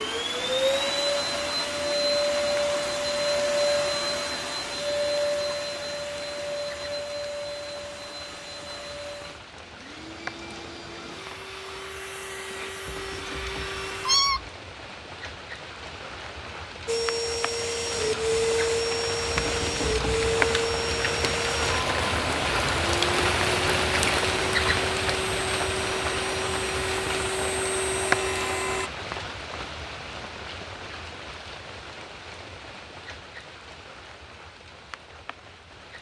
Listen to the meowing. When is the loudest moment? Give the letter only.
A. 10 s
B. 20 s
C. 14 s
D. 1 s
C.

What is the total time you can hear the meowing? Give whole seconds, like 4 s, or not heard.
3 s.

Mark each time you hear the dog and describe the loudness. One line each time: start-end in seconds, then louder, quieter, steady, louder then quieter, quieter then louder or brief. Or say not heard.
not heard.